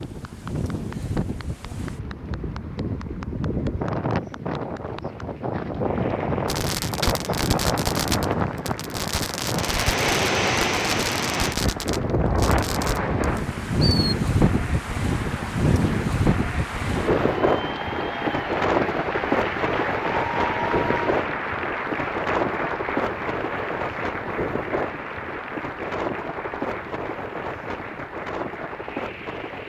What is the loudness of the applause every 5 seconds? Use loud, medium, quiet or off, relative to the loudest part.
quiet, quiet, medium, loud, loud, medium.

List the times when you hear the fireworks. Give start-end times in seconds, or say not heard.
6.5-13.9.